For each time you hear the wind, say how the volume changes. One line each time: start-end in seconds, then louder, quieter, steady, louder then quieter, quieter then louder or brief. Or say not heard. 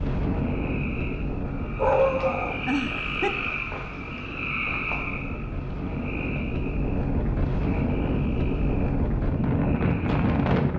0.0-10.7 quieter then louder.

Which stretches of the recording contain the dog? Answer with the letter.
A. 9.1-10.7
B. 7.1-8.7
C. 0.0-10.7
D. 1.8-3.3
D.